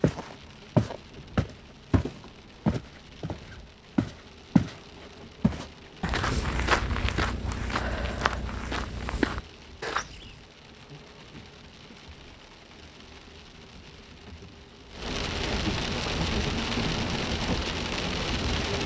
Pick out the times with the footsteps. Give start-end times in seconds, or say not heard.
0.0-4.8, 5.4-10.3.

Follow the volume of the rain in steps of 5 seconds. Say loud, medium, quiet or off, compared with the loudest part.
quiet, quiet, quiet, loud.